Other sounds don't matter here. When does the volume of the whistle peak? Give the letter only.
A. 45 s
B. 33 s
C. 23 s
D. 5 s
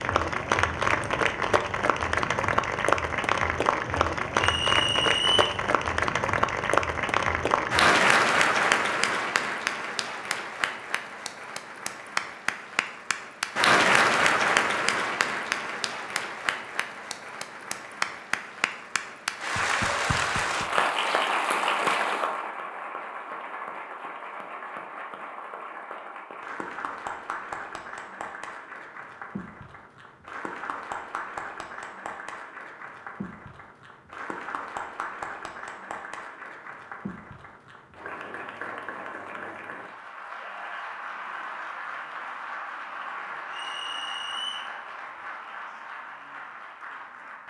D.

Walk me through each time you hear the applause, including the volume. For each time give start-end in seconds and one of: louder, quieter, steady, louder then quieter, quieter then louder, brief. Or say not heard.
0.0-47.4 quieter.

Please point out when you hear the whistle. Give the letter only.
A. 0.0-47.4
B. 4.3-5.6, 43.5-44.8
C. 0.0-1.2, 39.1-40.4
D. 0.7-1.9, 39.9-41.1
B.